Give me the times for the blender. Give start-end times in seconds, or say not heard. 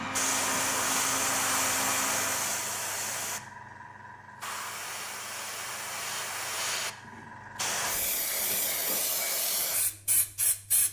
0.0-2.5.